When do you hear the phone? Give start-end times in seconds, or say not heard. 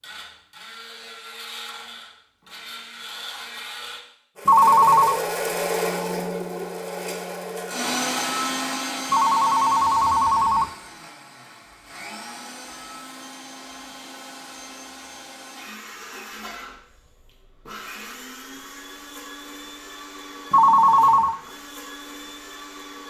4.5-5.2, 9.1-10.7, 20.5-21.4.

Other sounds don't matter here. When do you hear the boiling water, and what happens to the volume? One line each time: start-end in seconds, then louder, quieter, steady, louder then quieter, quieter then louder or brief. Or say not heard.
not heard.